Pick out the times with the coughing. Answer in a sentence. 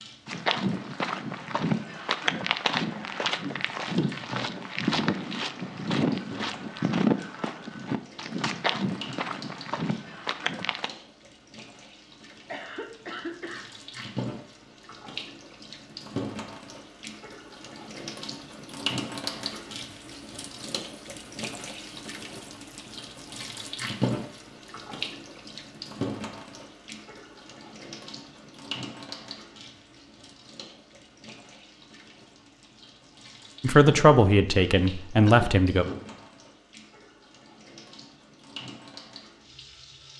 You can hear the coughing from 12.3 to 13.7 s and from 35.2 to 36.0 s.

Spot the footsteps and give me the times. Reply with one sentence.
You can hear the footsteps from 0.2 to 10.9 s.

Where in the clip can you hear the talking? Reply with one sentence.
You can hear the talking from 33.6 to 35.9 s.